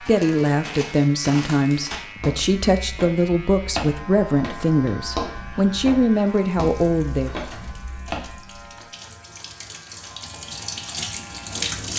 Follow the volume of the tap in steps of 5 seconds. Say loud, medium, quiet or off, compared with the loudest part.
off, quiet, loud.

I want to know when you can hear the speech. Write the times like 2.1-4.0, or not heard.
0.0-7.3.